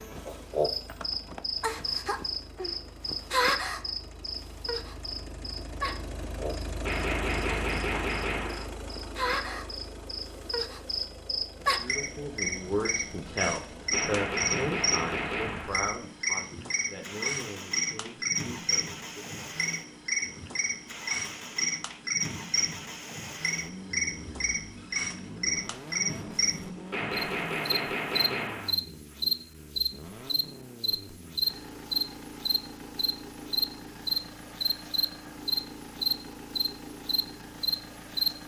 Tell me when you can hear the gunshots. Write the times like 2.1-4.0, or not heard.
6.8-8.7, 13.9-15.8, 26.9-28.8.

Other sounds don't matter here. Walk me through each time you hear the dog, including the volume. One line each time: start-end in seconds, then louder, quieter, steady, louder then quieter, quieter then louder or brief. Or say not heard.
not heard.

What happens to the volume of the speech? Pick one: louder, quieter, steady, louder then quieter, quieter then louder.
quieter.